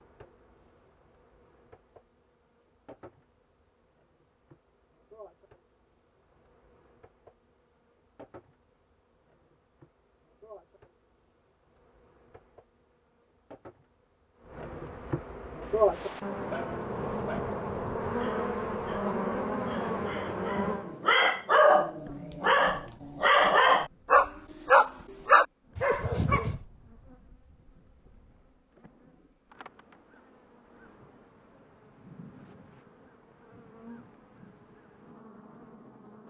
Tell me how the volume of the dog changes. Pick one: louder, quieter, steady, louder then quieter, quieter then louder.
louder.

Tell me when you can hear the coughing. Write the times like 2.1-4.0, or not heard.
not heard.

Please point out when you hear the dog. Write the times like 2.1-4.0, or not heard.
15.6-26.6.